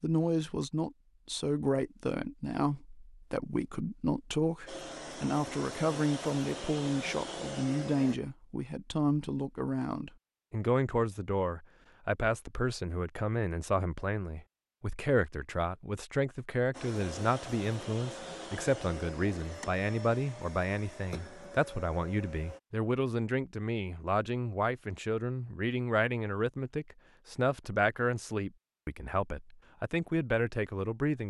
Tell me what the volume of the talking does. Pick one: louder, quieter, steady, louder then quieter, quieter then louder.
steady.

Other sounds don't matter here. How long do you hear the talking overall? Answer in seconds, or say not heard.
31 s.